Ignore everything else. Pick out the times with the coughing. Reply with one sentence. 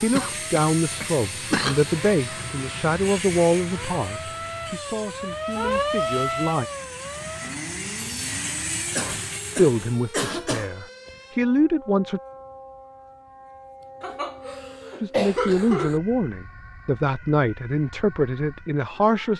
The coughing can be heard from 0.1 to 1.8 s, from 8.9 to 10.7 s and from 14.0 to 16.0 s.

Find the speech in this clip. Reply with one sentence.
The speech can be heard from 0.0 to 6.7 s, from 9.6 to 12.2 s and from 15.0 to 19.3 s.